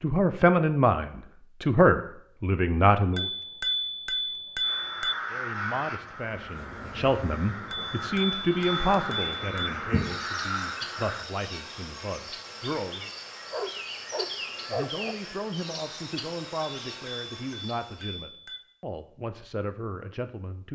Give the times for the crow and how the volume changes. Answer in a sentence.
You can hear the crow from 4.6 to 11.2 s, getting quieter then louder.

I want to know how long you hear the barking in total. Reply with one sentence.
The barking can be heard for 2 seconds in total.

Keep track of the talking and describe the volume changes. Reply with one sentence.
The loudness of the talking goes down.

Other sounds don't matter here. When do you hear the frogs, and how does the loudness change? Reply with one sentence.
The frogs can't be heard in this clip.